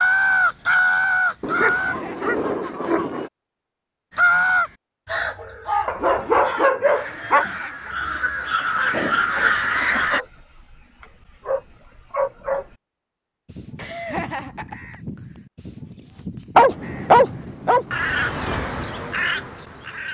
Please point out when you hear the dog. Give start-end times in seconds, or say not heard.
1.4-3.3, 5.8-7.5, 10.1-12.8, 16.6-17.9.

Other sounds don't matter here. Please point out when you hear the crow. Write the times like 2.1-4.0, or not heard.
0.0-1.9, 4.2-10.2, 13.4-20.0.